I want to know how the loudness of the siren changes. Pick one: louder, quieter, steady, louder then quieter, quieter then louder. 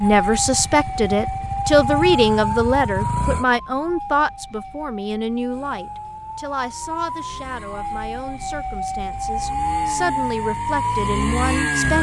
quieter then louder.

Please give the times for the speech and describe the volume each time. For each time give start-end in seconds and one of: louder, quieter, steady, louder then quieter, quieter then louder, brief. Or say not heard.
0.0-11.9 quieter then louder.